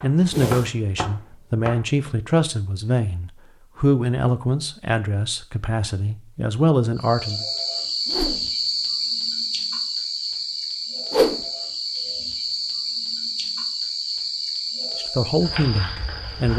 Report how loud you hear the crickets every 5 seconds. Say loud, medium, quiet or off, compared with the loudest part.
off, loud, loud, medium.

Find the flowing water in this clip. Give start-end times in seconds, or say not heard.
not heard.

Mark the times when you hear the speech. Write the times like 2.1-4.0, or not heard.
0.0-7.5, 14.9-16.5.